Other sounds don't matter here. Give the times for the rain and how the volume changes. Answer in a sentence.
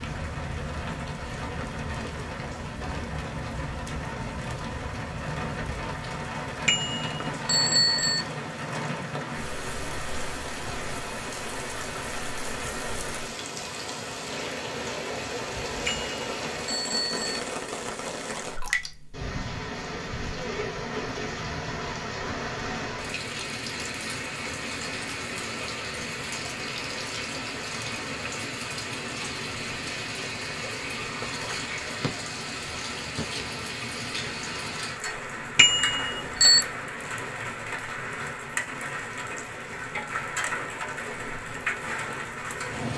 You can hear the rain from 0.0 to 42.9 s, at a steady volume.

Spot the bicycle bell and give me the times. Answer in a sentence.
The bicycle bell can be heard from 6.7 to 8.2 s, from 15.8 to 17.4 s and from 35.5 to 36.6 s.